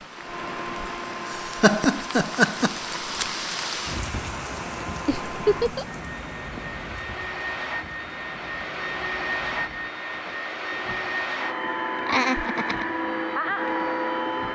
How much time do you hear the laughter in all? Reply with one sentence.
The laughter can be heard for 3 seconds in total.